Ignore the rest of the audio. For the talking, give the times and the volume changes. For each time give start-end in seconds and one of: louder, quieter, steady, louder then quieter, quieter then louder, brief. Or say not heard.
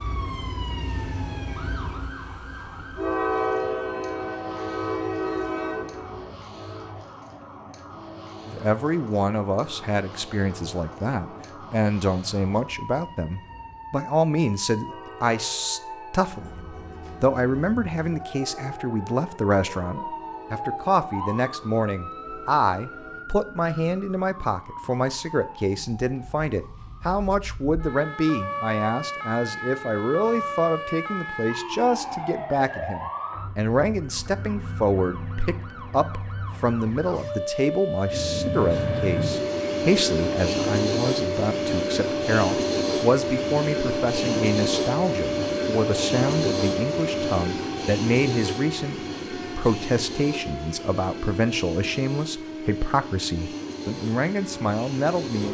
8.4-55.4 steady.